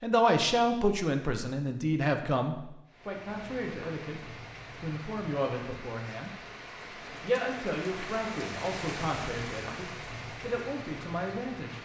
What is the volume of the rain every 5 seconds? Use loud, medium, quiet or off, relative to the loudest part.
medium, loud, loud.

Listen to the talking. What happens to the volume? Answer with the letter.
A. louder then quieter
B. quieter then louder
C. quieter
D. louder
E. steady
C.